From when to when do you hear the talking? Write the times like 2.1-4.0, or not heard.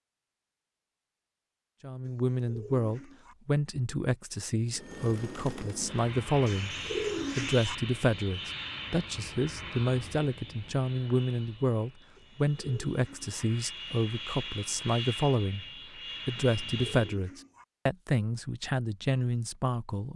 1.8-6.8, 7.3-15.7, 16.2-20.1.